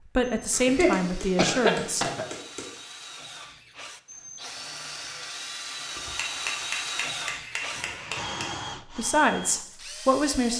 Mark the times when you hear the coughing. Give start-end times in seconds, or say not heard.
0.5-2.2.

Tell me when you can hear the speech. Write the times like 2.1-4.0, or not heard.
0.1-2.0, 8.9-10.5.